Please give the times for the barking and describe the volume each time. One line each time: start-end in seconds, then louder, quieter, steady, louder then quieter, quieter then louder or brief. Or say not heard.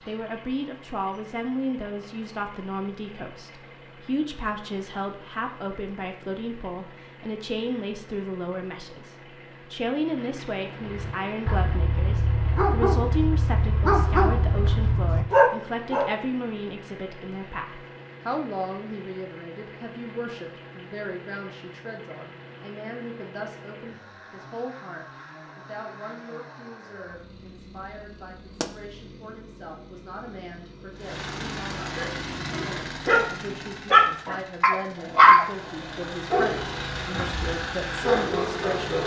10.8-16.1 louder
31.8-39.0 louder then quieter.